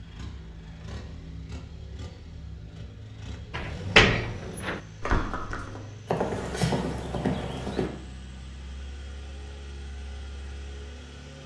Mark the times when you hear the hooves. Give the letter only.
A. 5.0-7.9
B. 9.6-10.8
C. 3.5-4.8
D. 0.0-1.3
A.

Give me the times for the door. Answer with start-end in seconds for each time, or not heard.
3.5-4.8.